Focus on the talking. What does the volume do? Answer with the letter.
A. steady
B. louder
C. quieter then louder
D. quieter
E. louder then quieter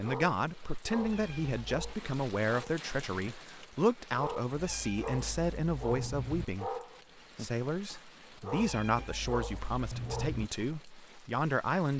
A.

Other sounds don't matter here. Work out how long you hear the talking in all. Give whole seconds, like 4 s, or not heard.
11 s.